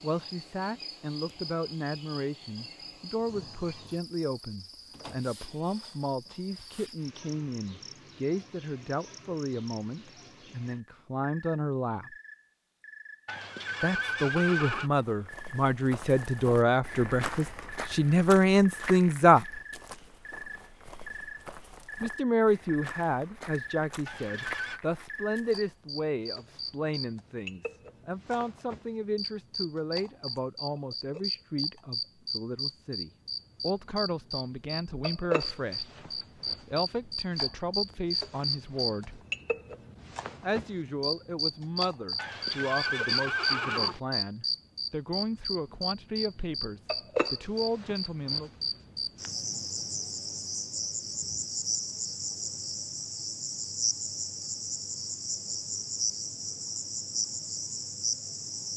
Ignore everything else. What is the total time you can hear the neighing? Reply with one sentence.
The neighing can be heard for 4 seconds in total.